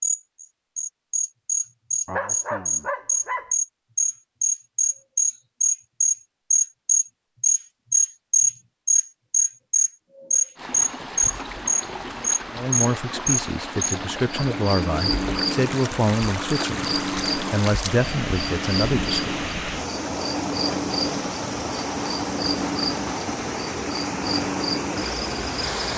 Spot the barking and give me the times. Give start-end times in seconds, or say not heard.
2.0-3.5.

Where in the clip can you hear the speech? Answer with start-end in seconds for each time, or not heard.
12.5-19.4.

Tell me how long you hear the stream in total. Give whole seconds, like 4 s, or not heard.
15 s.